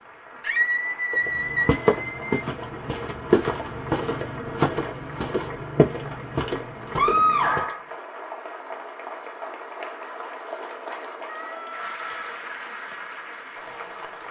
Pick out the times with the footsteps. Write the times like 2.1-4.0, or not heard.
1.1-7.7.